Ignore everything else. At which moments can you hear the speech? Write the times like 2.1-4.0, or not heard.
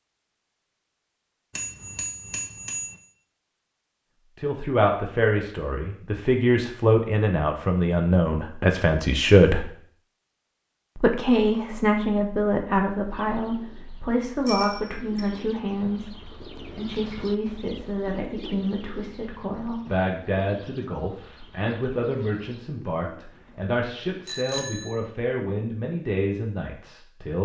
4.3-9.7, 10.9-27.4.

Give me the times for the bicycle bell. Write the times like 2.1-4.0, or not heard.
1.6-3.0, 14.4-15.2, 24.2-24.9.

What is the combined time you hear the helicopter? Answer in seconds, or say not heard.
not heard.